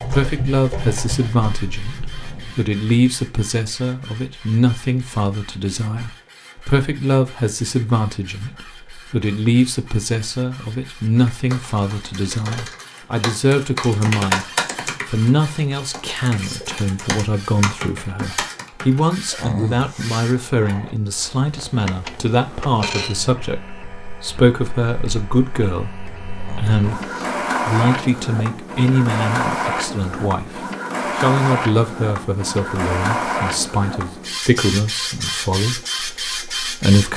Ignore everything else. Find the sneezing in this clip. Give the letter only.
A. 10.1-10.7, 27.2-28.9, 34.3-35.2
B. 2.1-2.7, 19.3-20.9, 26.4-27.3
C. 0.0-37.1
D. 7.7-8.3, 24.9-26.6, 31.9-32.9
B.